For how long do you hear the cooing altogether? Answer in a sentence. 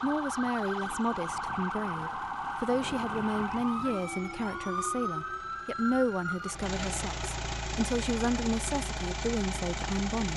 You can't hear the cooing here.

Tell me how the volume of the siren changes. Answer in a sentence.
The volume of the siren stays about the same.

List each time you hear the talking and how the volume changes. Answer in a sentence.
The talking can be heard from 0.0 to 10.3 s, at a steady volume.